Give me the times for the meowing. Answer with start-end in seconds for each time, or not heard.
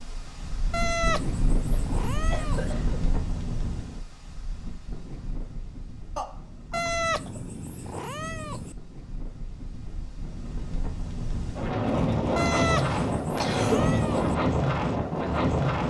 0.7-2.8, 6.7-8.8, 12.3-14.3.